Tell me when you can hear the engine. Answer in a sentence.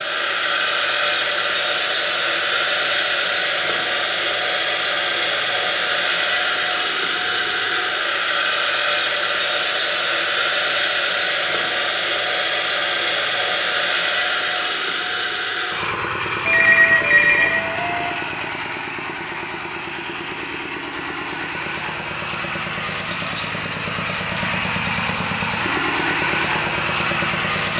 The engine can be heard from 0.0 to 27.7 s.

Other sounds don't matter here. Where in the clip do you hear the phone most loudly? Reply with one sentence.
The loudest moment of the phone is at 17 seconds.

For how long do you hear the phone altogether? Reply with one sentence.
You can hear the phone for 2 seconds altogether.